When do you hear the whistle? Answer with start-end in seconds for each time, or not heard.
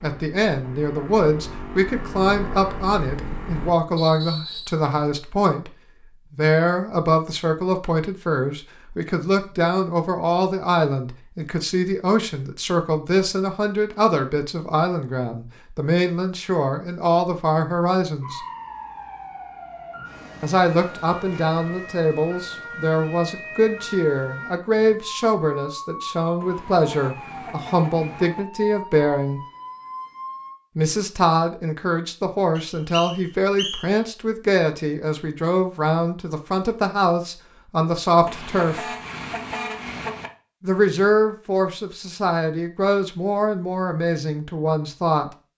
4.0-4.8, 32.5-33.9.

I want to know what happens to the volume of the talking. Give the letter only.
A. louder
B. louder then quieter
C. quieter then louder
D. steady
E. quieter
D.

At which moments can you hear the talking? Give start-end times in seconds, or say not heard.
0.0-5.8, 6.3-18.4, 20.4-29.4, 30.8-38.9, 40.6-45.3.